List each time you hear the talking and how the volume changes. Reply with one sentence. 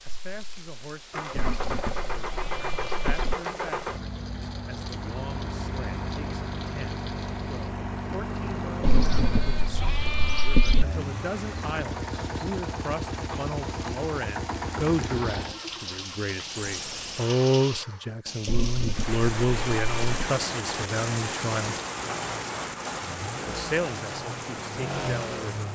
The talking can be heard from 0.0 to 21.8 s, getting louder; and briefly from 23.4 to 25.6 s.